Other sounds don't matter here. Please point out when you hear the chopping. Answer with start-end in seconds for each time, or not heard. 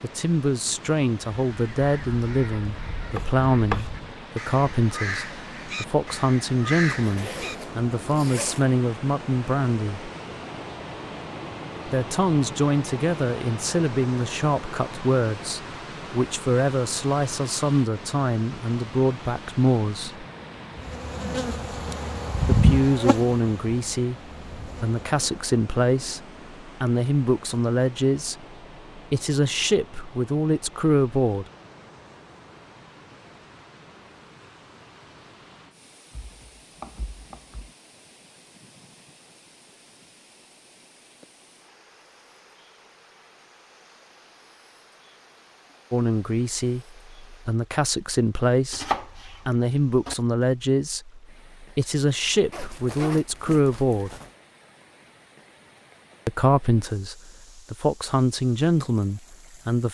2.6-3.9, 36.1-37.7, 48.7-50.1.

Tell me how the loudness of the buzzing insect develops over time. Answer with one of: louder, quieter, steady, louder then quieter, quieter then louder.
louder then quieter.